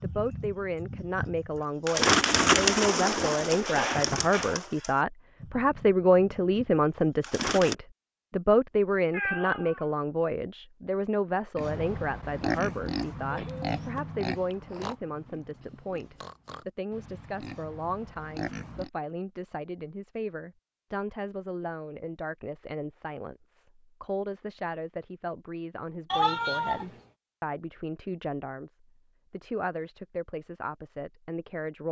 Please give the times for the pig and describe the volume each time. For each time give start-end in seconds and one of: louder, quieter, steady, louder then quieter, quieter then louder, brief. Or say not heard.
11.6-18.9 quieter then louder.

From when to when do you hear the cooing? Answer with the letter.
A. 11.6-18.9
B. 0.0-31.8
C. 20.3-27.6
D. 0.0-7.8
D.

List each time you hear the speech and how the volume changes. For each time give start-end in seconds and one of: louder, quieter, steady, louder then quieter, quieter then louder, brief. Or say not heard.
0.0-31.8 quieter.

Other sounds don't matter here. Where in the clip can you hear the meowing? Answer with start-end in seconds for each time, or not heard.
9.1-9.8, 26.1-26.9.